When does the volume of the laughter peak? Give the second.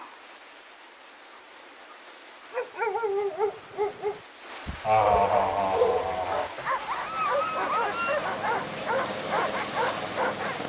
5 s.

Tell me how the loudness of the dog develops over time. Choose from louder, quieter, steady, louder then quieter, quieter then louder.
steady.